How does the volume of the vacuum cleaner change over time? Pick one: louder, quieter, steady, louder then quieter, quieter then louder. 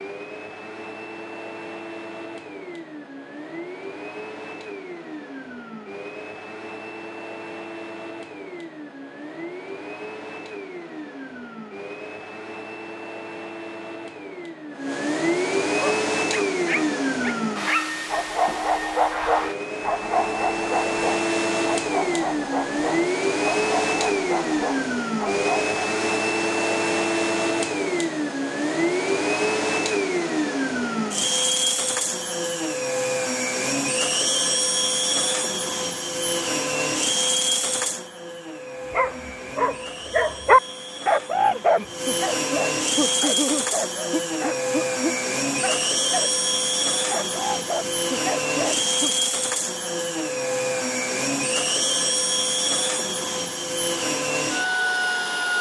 louder.